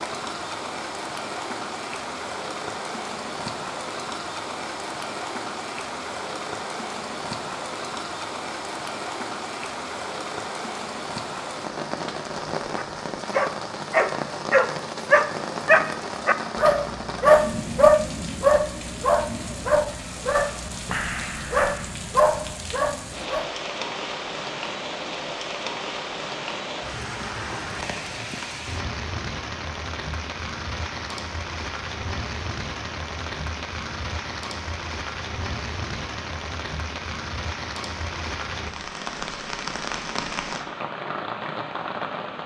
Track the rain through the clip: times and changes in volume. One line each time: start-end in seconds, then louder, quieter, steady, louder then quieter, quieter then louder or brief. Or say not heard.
0.0-42.4 steady.